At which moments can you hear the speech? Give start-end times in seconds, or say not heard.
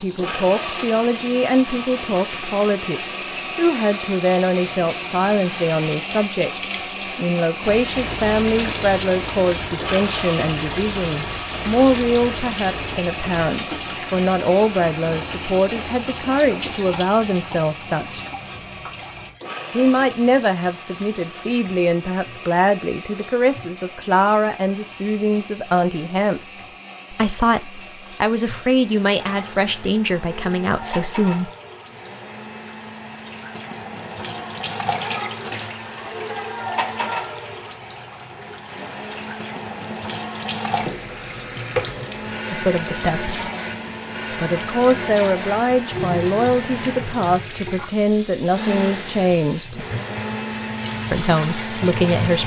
0.0-18.2, 19.7-31.5, 42.5-43.5, 44.3-49.9, 51.1-52.4.